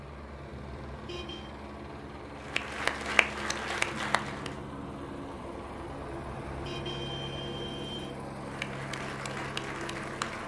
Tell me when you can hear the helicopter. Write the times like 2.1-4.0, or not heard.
0.0-10.4.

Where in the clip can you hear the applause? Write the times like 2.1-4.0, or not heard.
2.4-4.5, 8.4-10.4.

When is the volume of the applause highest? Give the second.
3 s.